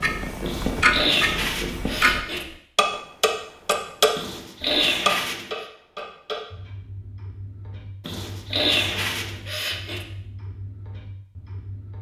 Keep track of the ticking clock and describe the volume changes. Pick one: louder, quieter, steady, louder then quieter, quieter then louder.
quieter.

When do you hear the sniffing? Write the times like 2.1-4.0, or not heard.
0.5-2.5, 4.2-5.7, 8.0-10.1.